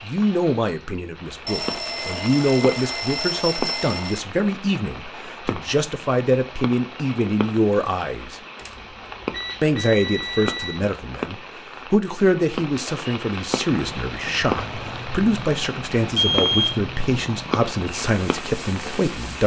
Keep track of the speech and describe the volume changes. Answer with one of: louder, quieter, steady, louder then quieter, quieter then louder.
steady.